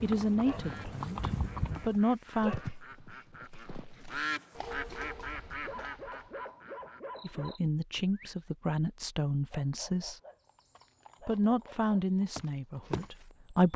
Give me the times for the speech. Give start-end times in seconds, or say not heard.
0.0-2.5, 7.2-10.2, 11.2-13.7.